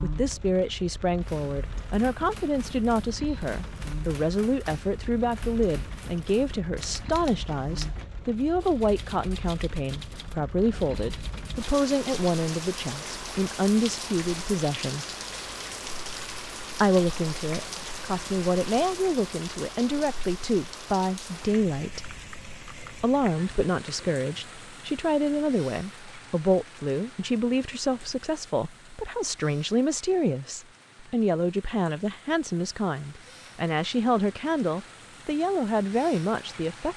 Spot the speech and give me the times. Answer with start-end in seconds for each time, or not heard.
0.0-15.1, 16.8-22.1, 23.0-36.9.